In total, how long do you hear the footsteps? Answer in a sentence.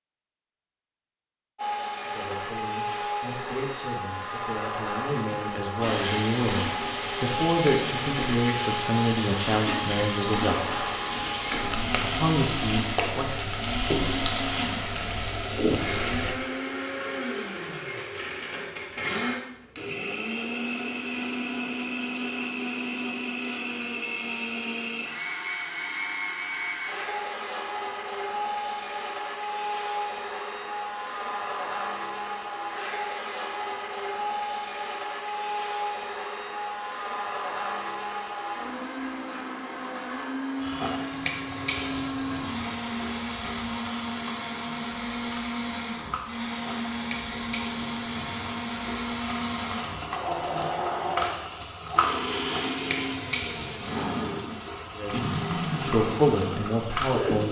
You can't hear the footsteps here.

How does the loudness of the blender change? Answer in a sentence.
The loudness of the blender stays about the same.